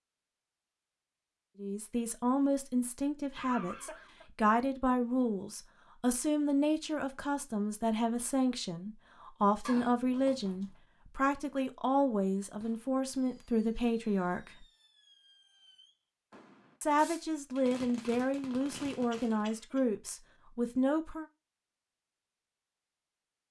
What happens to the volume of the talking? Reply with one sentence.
The volume of the talking stays about the same.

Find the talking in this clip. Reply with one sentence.
The talking can be heard from 1.6 to 14.7 s and from 16.8 to 21.2 s.